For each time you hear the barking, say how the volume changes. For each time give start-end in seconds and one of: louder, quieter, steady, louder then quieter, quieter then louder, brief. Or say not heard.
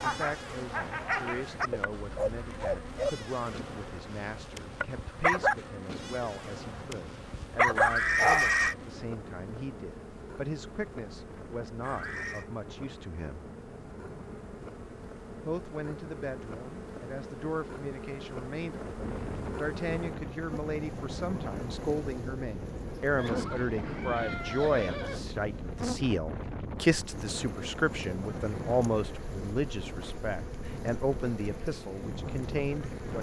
0.0-8.4 quieter then louder.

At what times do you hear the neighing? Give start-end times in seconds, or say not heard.
7.8-8.8, 11.8-12.5, 23.1-25.2.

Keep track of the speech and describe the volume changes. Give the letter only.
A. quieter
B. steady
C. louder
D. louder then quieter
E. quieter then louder
C.